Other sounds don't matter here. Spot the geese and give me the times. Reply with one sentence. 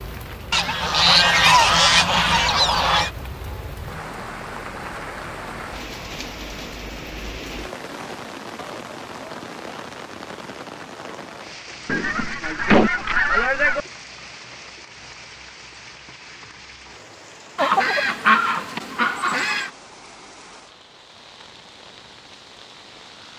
You can hear the geese from 0.5 to 3.1 s, from 11.8 to 13.8 s and from 17.6 to 19.7 s.